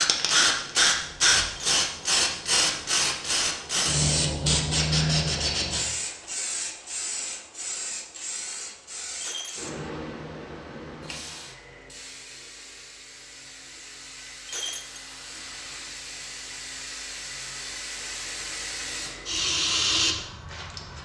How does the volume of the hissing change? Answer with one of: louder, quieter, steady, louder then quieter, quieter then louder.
quieter then louder.